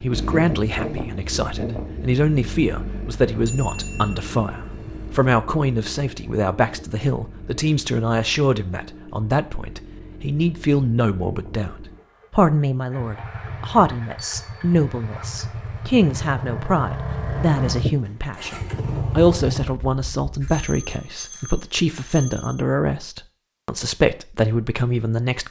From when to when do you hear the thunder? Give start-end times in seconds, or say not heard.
not heard.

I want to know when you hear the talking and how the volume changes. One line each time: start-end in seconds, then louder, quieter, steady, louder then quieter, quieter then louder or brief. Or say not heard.
0.0-25.4 steady.